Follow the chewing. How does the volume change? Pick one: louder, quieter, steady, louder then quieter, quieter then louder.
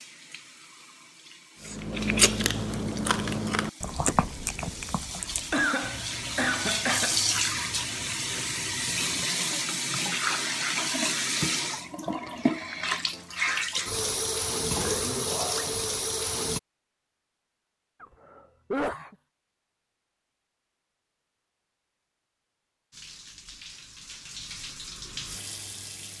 quieter.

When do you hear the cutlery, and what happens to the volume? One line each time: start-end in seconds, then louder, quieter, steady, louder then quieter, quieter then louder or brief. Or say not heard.
not heard.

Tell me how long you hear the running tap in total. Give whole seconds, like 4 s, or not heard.
20 s.